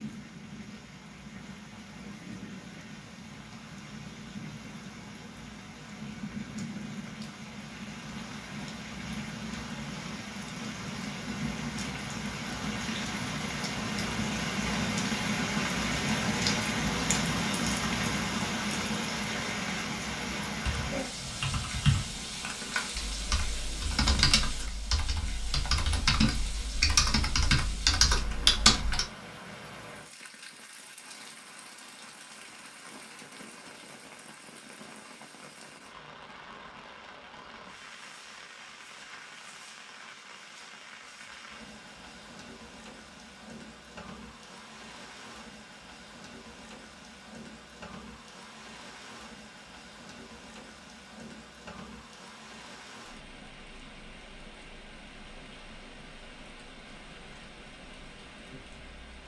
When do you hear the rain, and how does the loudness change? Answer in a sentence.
You can hear the rain from 0.0 to 59.2 s, getting louder then quieter.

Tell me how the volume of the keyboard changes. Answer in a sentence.
The loudness of the keyboard goes up.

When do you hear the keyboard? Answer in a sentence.
The keyboard can be heard from 20.6 to 29.1 s.